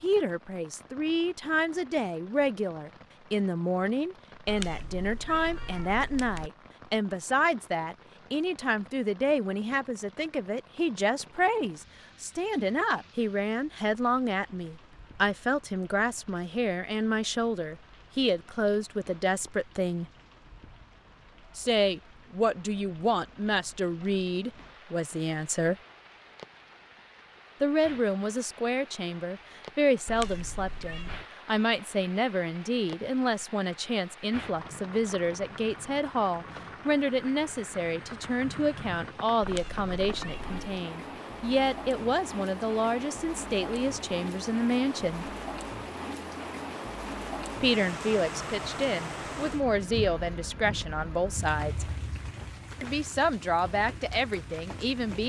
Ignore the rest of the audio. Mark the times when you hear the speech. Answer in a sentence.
The speech can be heard from 0.0 to 20.1 s, from 21.6 to 25.8 s, from 27.6 to 45.3 s, from 47.6 to 51.9 s and from 52.8 to 55.2 s.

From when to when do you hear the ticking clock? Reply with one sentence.
The ticking clock can't be heard in this clip.